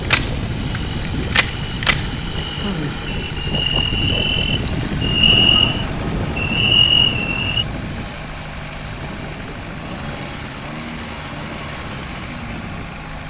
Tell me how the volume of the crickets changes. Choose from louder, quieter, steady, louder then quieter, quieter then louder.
louder.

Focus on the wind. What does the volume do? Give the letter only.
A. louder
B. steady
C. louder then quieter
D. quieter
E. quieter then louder
D.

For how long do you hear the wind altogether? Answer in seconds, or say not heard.
13 s.